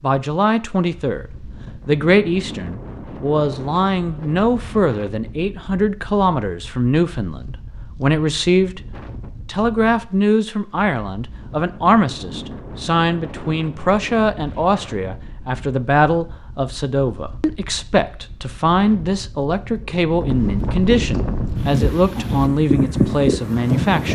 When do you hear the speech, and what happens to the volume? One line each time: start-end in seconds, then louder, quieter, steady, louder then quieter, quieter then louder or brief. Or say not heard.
0.0-1.2 brief
1.9-8.8 steady
9.4-24.1 steady.